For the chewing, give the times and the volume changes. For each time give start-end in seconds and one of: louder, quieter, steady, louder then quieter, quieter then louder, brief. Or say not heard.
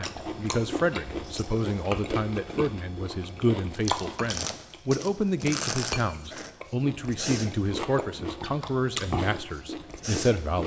0.0-10.6 steady.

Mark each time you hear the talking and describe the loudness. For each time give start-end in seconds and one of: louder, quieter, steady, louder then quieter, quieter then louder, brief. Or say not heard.
0.0-10.6 steady.